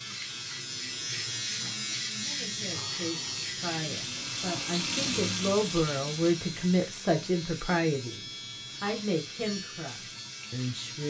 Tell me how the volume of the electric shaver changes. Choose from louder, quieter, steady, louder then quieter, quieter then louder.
quieter.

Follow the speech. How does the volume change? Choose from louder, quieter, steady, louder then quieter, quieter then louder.
louder then quieter.